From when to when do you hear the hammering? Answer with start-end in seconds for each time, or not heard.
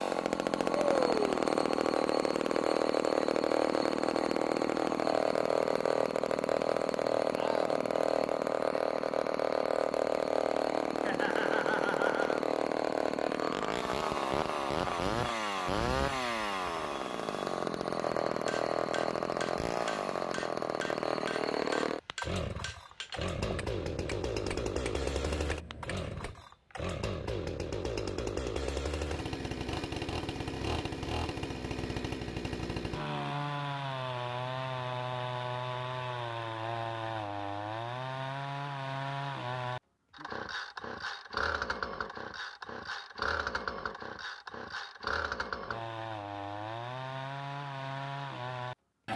18.3-26.4.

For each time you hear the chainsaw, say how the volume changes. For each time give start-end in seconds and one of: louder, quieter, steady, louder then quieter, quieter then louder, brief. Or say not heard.
0.0-49.1 quieter.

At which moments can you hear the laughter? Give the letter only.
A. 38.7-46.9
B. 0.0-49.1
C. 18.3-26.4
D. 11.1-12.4
D.